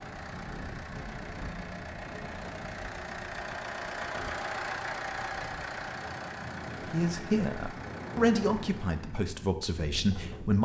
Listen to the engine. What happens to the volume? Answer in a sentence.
The loudness of the engine goes up, then down.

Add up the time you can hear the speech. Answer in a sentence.
You can hear the speech for 4 seconds altogether.